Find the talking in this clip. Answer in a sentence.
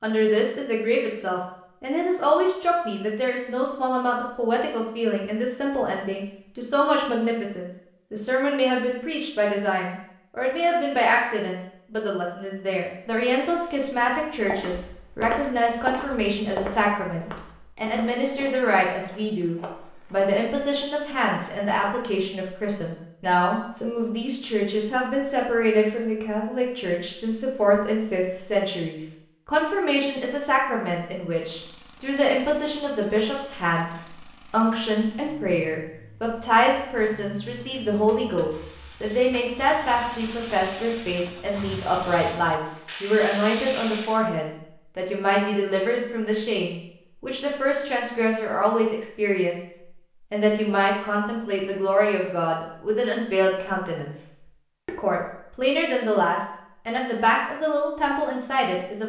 You can hear the talking from 0.0 to 49.6 s and from 50.3 to 59.0 s.